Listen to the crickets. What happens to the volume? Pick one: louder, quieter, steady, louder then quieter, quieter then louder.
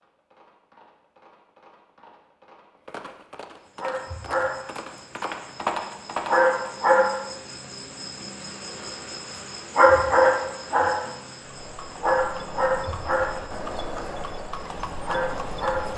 louder then quieter.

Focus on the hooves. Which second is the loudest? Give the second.
6 s.